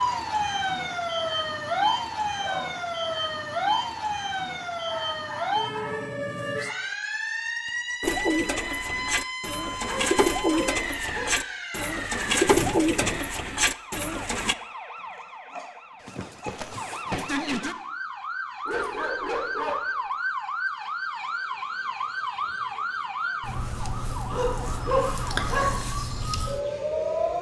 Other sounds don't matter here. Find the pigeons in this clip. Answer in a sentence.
The pigeons can be heard from 8.0 to 14.6 s.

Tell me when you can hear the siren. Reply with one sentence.
The siren can be heard from 0.0 to 27.3 s.